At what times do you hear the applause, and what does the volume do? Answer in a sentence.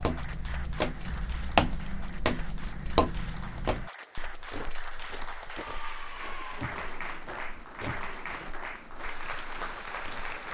The applause can be heard from 0.0 to 10.5 s, getting louder.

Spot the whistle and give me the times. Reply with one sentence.
The whistle can't be heard in this clip.